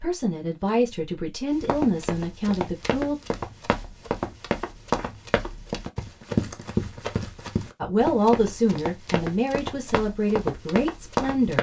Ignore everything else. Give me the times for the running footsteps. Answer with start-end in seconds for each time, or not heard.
1.5-11.5.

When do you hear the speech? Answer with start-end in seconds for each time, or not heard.
0.0-3.1, 7.8-11.5.